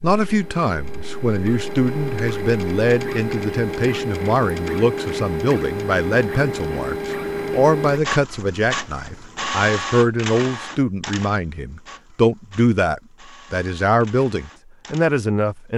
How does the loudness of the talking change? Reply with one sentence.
The loudness of the talking stays about the same.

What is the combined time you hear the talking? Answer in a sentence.
The talking can be heard for 16 seconds in total.